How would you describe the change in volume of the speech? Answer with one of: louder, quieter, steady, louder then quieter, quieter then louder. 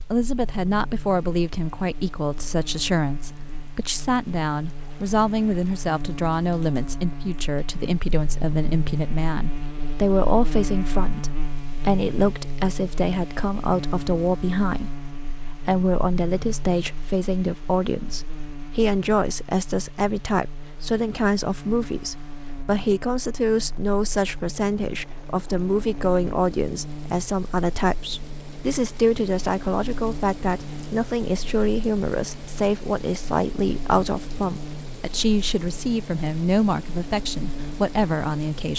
steady.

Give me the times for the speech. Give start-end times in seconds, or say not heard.
0.0-38.7.